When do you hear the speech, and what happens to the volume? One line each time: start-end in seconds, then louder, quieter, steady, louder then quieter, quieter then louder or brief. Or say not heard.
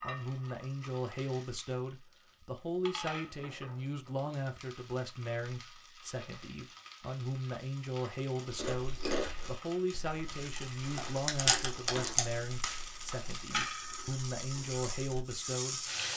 0.0-15.9 steady.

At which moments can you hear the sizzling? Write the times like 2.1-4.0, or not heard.
0.0-16.1.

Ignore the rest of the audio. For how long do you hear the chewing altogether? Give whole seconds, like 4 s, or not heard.
7 s.